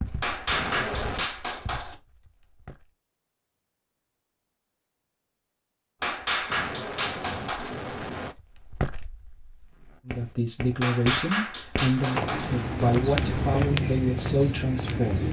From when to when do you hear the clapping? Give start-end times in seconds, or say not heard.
0.2-1.9, 6.0-7.8, 10.8-12.6.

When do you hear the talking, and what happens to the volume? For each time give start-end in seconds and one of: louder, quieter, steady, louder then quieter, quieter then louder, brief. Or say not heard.
10.1-15.2 steady.